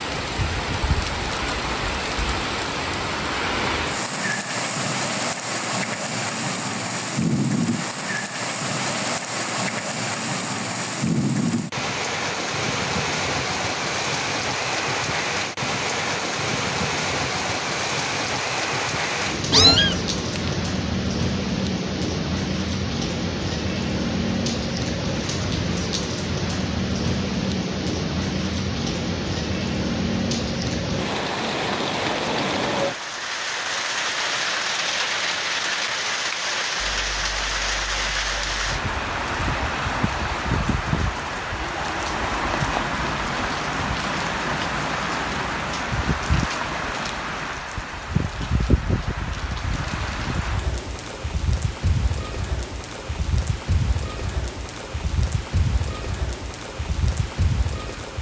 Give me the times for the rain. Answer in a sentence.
The rain can be heard from 0.0 to 58.1 s.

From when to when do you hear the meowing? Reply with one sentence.
The meowing can be heard from 19.5 to 20.6 s.